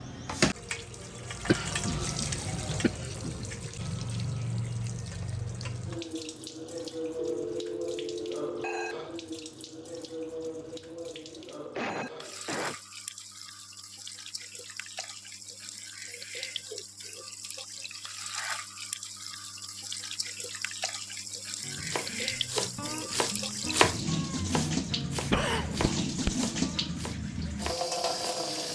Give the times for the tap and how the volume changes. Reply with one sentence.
The tap can be heard from 0.0 to 28.7 s, getting quieter then louder.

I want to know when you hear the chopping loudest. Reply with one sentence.
The loudest moment of the chopping is at 24 seconds.